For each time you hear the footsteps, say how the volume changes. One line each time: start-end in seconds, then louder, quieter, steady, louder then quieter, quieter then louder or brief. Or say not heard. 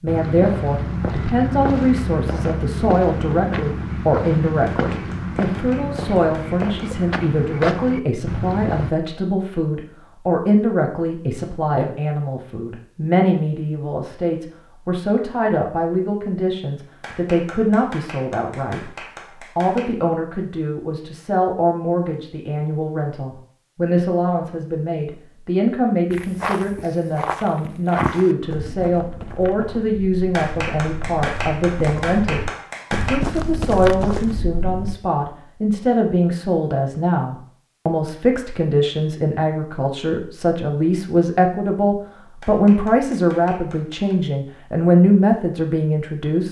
0.1-8.9 steady
26.1-35.0 quieter then louder.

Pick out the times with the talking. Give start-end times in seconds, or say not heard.
0.0-46.4.